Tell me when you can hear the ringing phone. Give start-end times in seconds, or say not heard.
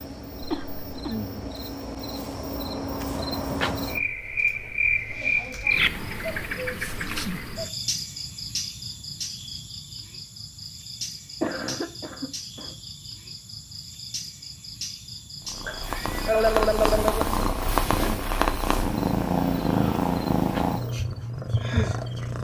not heard.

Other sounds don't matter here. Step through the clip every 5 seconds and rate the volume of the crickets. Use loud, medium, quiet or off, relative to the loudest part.
loud, loud, medium, medium, medium.